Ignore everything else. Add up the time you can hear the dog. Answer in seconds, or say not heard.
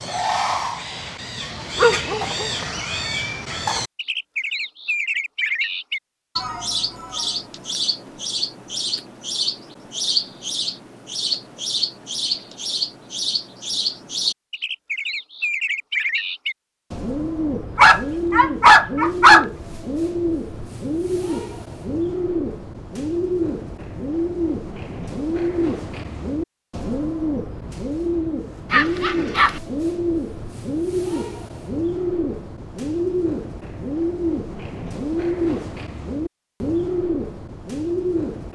3 s.